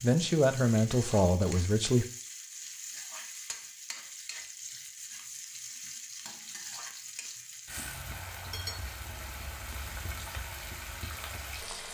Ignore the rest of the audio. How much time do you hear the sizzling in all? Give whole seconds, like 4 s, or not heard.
12 s.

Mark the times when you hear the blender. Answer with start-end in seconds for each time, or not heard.
not heard.